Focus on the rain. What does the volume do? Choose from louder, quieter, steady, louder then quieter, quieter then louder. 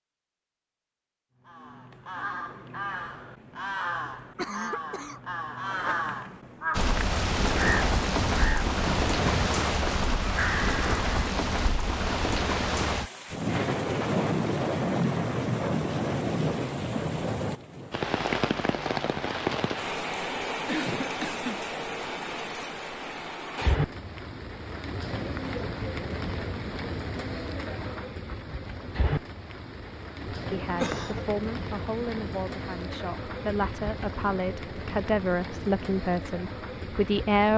quieter.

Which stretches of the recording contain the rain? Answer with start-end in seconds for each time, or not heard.
6.7-37.5.